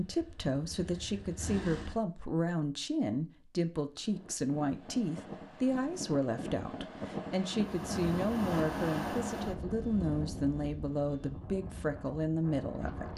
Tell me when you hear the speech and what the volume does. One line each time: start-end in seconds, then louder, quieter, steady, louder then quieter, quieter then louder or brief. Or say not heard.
0.0-13.1 steady.